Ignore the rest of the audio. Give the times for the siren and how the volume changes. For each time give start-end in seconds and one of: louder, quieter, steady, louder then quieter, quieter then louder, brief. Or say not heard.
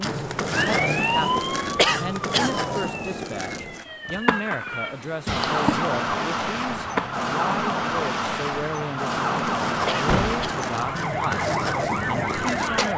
0.0-12.9 quieter then louder.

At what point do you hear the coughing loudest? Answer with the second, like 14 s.
2 s.